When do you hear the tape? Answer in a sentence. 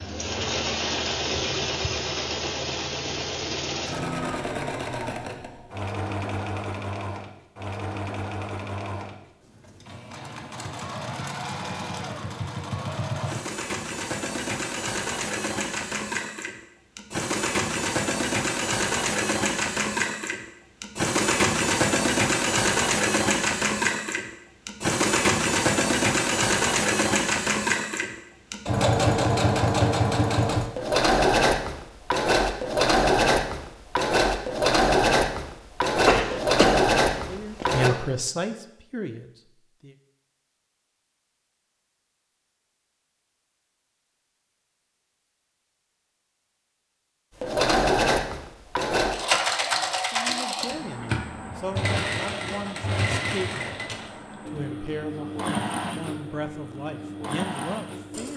The tape can't be heard in this clip.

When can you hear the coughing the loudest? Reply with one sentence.
The volume of the coughing peaks at 36 seconds.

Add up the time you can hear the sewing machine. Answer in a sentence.
You can hear the sewing machine for 49 seconds altogether.